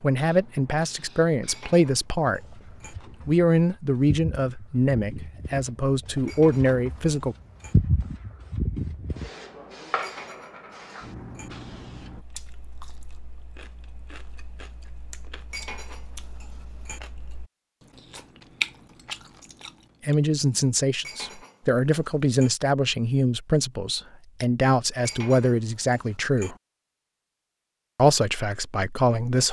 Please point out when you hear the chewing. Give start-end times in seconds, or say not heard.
12.0-20.1.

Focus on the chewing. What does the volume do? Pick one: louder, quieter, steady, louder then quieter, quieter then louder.
louder.